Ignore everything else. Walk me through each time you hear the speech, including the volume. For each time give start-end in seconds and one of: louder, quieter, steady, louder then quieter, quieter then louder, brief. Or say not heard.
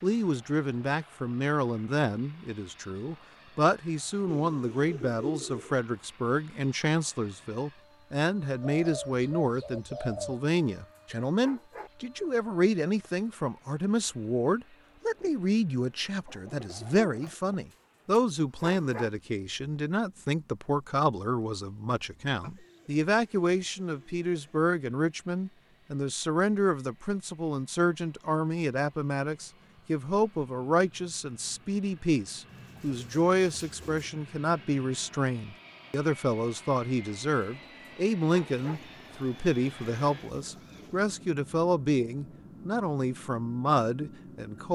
0.0-44.6 steady.